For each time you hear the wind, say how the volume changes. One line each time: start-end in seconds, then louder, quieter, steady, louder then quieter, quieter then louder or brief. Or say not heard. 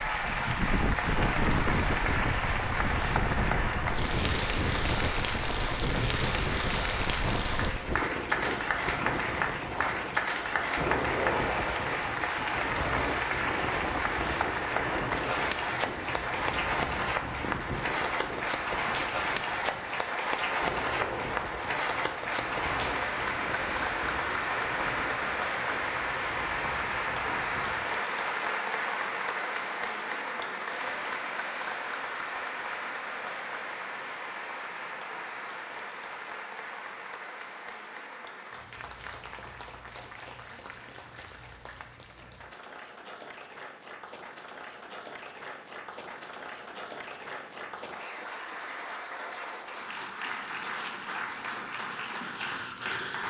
0.0-27.9 quieter.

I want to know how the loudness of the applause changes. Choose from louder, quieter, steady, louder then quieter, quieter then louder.
quieter.